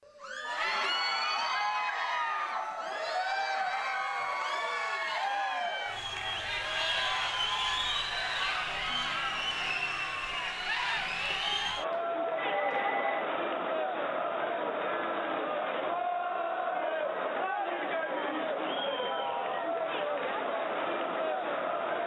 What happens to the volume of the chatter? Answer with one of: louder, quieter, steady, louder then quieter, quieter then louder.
steady.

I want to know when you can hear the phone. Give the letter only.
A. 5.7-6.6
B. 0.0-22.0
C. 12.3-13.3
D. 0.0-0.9
C.